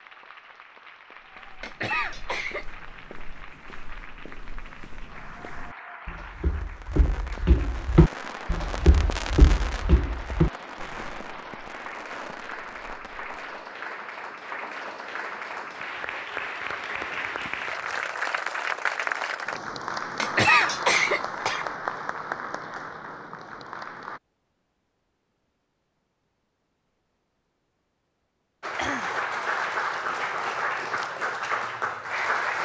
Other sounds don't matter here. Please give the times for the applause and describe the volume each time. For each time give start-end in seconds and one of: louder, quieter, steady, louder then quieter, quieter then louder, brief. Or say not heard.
0.0-24.2 louder
28.6-32.6 steady.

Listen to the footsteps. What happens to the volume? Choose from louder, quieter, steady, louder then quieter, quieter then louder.
louder.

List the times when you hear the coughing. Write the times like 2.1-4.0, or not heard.
1.6-2.6, 20.1-21.6.